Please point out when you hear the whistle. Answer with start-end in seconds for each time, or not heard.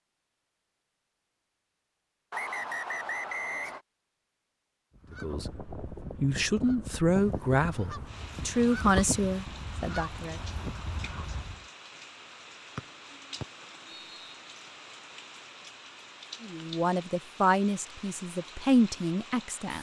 2.3-3.8, 12.8-14.3.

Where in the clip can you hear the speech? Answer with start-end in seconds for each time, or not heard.
5.1-10.4, 16.4-19.7.